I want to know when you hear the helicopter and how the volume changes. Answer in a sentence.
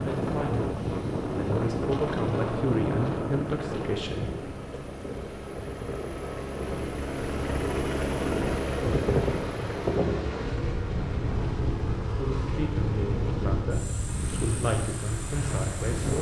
You can hear the helicopter from 0.0 to 16.1 s, getting louder then quieter.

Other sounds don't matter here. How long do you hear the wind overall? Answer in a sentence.
The wind can be heard for 16 seconds in total.